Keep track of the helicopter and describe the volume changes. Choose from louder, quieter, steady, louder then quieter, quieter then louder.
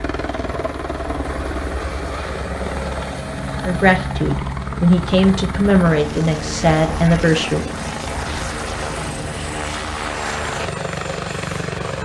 steady.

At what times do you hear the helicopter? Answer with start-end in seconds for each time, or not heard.
0.0-12.0.